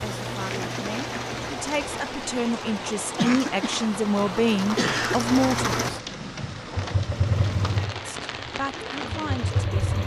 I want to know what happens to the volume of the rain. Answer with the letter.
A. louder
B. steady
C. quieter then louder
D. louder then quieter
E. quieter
B.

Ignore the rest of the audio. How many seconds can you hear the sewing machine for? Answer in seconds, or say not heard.
10 s.